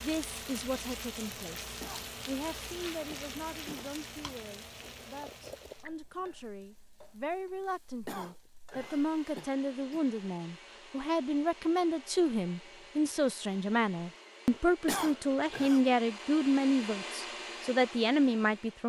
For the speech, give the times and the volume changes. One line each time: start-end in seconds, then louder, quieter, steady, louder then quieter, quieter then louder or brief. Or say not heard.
0.0-18.8 louder.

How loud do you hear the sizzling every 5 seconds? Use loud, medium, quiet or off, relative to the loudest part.
loud, medium, off, off.